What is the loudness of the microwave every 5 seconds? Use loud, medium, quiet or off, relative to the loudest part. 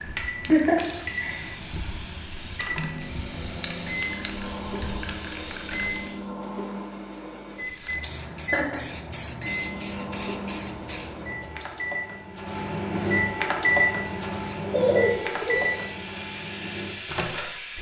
medium, medium, loud, loud.